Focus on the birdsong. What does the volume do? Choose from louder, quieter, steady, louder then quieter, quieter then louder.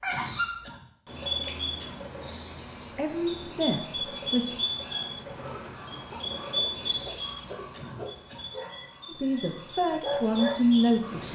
quieter.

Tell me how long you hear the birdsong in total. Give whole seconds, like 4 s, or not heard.
11 s.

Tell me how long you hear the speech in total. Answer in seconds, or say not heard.
4 s.